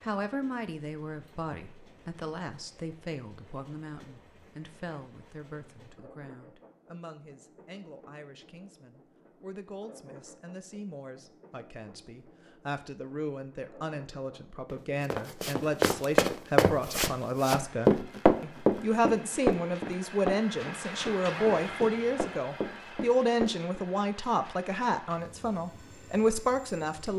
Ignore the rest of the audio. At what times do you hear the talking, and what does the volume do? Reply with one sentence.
The talking can be heard from 0.0 to 27.1 s, getting quieter then louder.